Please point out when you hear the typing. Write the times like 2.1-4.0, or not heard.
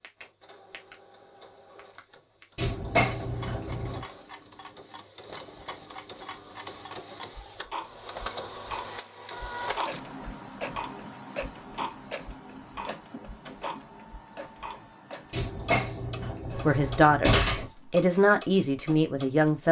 not heard.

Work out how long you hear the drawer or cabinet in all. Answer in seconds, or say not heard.
4 s.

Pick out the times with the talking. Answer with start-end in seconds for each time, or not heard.
16.6-19.6.